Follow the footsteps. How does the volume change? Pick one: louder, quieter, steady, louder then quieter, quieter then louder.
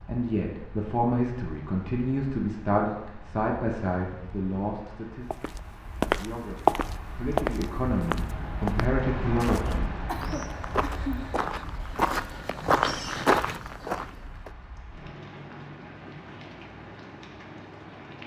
quieter then louder.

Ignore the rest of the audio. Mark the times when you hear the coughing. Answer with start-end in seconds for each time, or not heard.
10.1-11.2.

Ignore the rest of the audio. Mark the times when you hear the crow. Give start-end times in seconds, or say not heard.
not heard.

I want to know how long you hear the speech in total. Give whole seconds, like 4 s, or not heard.
10 s.